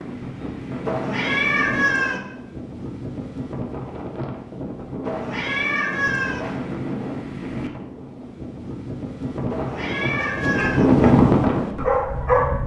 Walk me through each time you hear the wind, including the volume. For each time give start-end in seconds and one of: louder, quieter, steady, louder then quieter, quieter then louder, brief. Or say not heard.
0.0-12.6 louder.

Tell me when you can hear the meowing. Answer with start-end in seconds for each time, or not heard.
0.8-2.2, 5.0-6.6, 9.5-11.1.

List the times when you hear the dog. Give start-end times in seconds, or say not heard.
10.2-12.6.